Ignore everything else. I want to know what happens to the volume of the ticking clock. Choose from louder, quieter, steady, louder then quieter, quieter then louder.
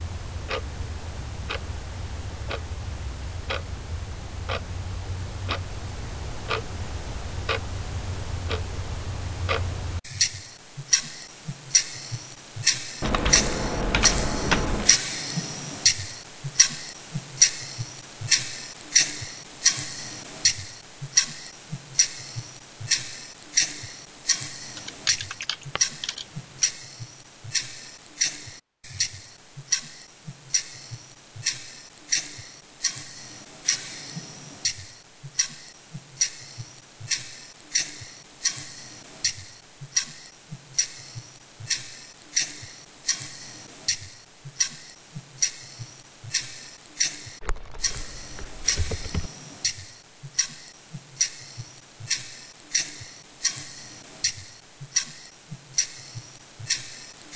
louder then quieter.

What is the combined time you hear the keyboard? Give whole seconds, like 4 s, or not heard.
6 s.